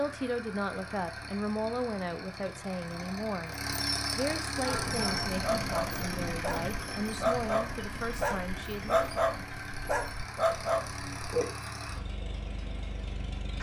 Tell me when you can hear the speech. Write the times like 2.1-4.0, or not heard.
0.0-9.1.